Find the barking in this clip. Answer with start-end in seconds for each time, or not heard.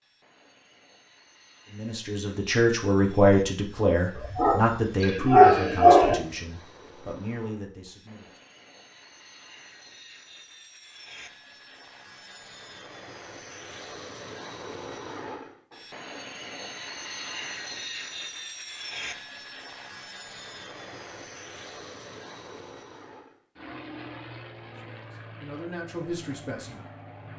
4.2-6.2.